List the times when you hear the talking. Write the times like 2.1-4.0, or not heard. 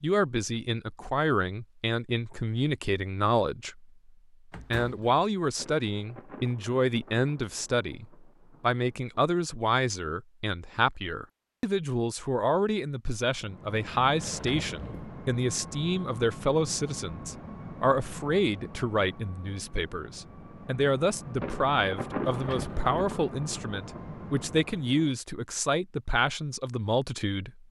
0.0-3.9, 4.7-27.6.